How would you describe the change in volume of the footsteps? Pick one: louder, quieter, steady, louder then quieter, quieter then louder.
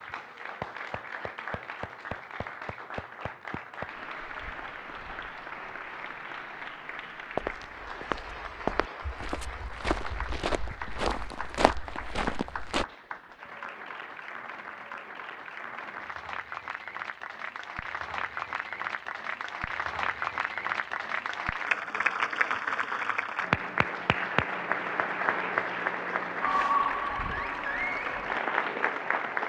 quieter then louder.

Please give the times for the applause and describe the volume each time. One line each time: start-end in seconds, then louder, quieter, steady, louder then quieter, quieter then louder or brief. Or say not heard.
0.0-29.4 louder.